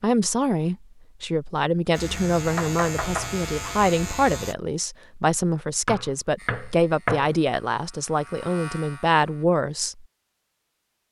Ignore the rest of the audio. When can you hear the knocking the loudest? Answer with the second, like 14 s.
7 s.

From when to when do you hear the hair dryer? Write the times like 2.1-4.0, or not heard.
not heard.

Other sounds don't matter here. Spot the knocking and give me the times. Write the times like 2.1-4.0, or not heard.
2.5-3.4, 5.8-7.3.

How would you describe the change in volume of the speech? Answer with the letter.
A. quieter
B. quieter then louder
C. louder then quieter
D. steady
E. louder
D.